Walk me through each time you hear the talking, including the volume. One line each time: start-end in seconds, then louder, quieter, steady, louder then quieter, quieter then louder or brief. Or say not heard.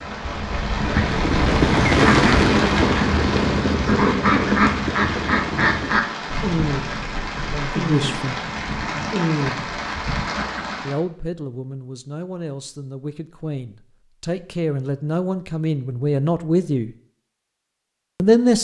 7.4-8.4 brief
10.8-16.9 louder
18.1-18.6 brief.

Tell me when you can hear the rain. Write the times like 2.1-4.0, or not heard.
0.0-10.9.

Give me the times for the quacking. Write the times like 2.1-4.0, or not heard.
0.8-10.8.